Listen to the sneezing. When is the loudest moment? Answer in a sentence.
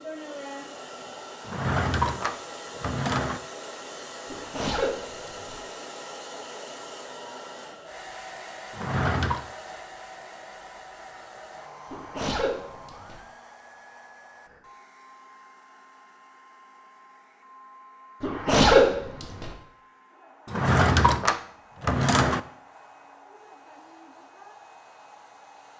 The loudest moment of the sneezing is at 19 seconds.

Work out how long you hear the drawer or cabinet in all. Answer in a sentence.
The drawer or cabinet can be heard for 5 seconds in total.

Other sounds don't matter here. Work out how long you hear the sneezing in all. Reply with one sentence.
You can hear the sneezing for 4 seconds altogether.